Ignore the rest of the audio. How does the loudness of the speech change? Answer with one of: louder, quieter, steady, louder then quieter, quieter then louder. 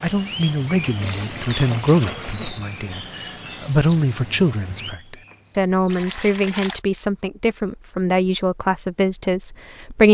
steady.